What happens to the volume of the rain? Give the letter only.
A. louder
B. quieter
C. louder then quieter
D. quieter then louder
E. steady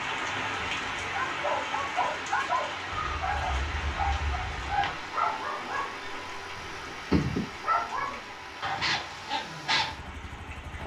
B.